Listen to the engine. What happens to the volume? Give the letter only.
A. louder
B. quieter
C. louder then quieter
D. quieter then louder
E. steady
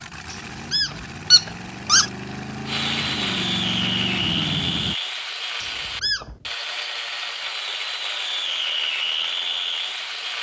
A.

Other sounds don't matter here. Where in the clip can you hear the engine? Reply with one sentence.
You can hear the engine from 0.0 to 5.0 s.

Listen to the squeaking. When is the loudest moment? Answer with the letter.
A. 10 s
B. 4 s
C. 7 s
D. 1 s
D.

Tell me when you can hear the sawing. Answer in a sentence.
You can hear the sawing from 2.6 to 10.3 s.